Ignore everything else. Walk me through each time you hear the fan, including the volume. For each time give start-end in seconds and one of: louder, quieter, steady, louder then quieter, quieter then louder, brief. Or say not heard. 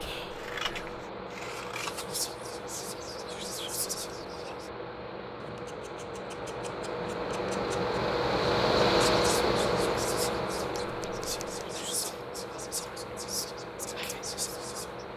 0.0-15.1 louder then quieter.